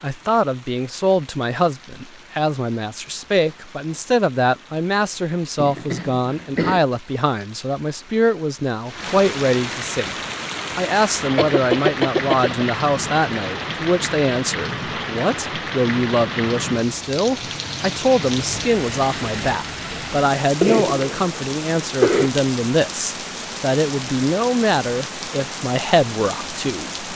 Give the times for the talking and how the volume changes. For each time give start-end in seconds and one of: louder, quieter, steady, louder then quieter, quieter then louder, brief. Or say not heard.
0.0-10.2 steady
10.8-27.1 steady.